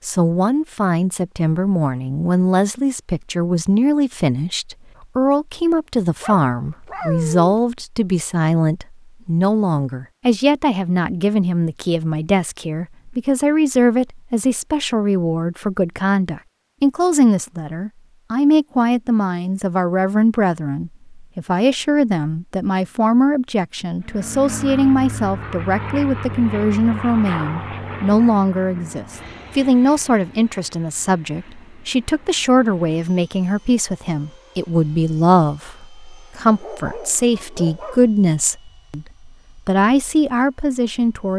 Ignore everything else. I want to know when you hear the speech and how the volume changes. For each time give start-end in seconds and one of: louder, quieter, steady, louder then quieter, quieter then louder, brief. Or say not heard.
0.1-39.0 steady
39.6-41.3 brief.